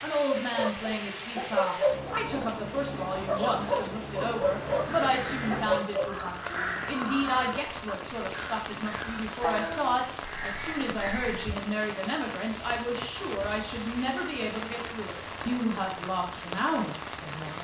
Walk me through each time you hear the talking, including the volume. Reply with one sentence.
The talking can be heard from 0.0 to 17.6 s, at a steady volume.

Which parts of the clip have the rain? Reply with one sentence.
The rain can be heard from 0.0 to 17.6 s.